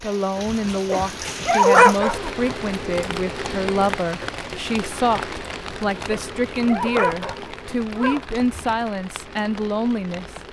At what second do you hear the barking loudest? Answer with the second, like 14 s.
2 s.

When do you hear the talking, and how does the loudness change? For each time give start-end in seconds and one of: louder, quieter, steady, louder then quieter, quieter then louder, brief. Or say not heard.
0.0-10.3 steady.